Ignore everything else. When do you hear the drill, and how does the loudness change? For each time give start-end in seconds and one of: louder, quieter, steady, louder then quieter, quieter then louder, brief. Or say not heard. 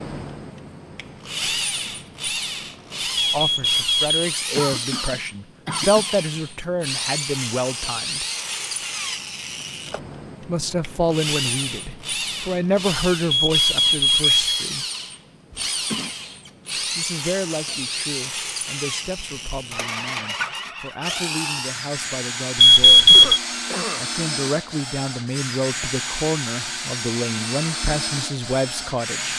0.0-29.3 steady.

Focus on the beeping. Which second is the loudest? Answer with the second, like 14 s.
23 s.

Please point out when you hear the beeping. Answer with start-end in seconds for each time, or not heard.
3.3-4.1, 13.3-14.7, 22.6-23.4.